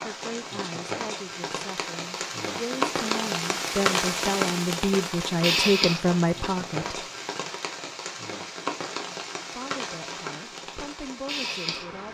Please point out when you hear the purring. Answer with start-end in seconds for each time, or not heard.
not heard.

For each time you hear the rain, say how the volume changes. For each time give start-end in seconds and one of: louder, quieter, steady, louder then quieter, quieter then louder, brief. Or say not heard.
0.0-12.0 louder then quieter.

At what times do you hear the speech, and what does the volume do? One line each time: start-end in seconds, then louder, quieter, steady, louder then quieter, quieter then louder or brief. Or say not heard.
0.0-7.0 louder
9.6-12.0 brief.